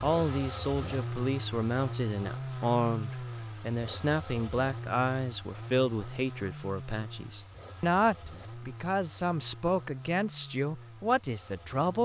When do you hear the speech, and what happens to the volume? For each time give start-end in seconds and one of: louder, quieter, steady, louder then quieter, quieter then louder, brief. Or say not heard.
0.0-11.9 steady.